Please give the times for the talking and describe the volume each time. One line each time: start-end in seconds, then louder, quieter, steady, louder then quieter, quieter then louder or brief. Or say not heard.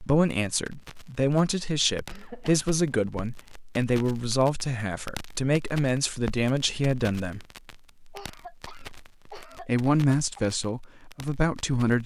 0.0-7.4 steady
9.6-12.0 brief.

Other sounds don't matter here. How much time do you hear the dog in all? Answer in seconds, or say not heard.
not heard.